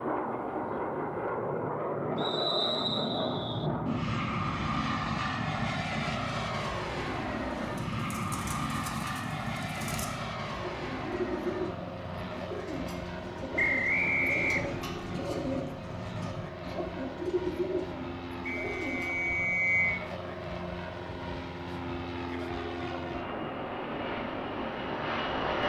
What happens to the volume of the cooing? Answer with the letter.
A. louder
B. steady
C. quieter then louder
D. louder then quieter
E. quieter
A.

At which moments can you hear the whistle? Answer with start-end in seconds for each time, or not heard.
2.1-3.7, 13.6-14.8, 18.4-20.1.